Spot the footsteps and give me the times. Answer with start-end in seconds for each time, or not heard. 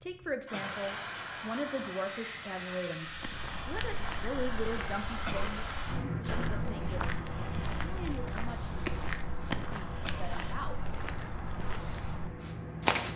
3.0-13.1.